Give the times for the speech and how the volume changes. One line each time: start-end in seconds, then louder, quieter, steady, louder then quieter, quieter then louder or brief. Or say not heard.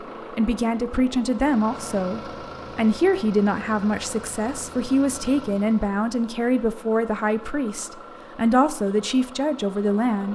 0.3-10.3 steady.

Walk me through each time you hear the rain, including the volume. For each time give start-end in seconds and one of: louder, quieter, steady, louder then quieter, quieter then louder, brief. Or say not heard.
not heard.